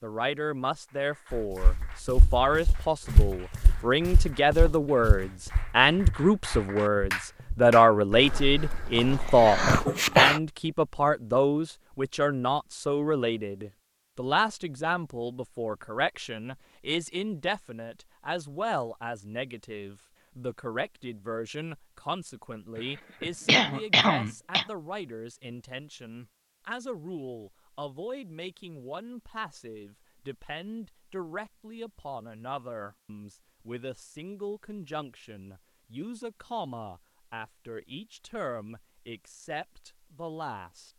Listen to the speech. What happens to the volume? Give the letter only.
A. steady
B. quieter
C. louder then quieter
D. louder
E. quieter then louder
B.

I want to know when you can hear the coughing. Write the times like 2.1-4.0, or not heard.
8.9-10.4, 22.8-24.6.